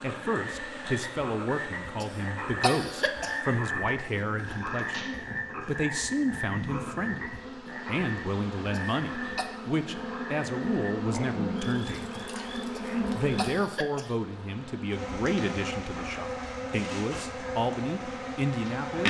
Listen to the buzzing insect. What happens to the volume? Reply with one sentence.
The loudness of the buzzing insect goes up.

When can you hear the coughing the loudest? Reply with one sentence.
The loudest moment of the coughing is at 3 seconds.